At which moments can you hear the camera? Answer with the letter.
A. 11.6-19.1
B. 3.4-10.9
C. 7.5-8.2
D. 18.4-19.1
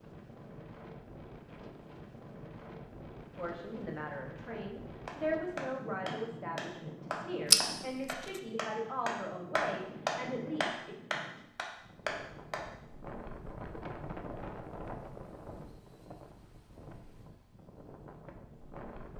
C.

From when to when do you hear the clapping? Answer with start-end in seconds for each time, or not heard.
5.0-12.7.